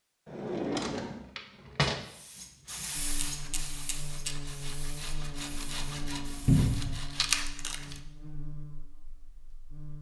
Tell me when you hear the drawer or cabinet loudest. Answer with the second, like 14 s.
7 s.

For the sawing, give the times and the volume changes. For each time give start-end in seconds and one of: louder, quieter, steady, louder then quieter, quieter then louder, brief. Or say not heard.
2.6-8.0 louder.